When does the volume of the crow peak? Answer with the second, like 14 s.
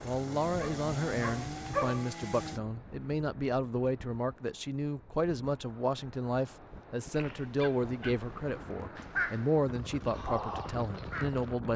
9 s.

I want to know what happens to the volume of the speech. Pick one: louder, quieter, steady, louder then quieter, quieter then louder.
steady.